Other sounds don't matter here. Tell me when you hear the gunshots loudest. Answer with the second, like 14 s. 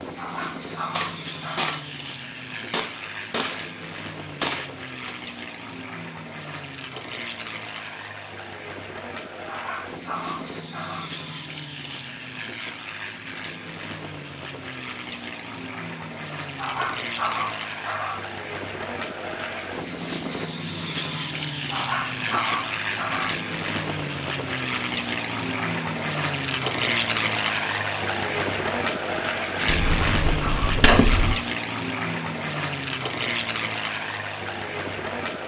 31 s.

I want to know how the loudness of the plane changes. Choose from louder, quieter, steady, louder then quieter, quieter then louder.
louder.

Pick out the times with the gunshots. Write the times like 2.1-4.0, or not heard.
0.9-1.9, 2.7-5.2, 29.6-31.4.